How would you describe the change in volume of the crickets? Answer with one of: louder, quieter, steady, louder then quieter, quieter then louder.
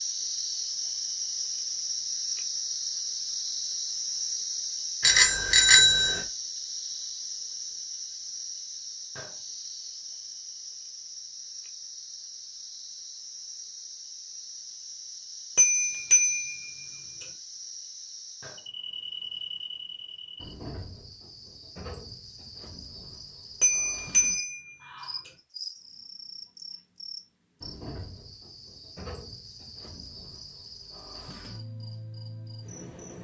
quieter.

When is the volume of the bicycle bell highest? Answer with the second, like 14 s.
6 s.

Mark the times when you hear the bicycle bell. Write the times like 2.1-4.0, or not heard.
5.0-6.2, 15.6-16.9, 23.6-25.3.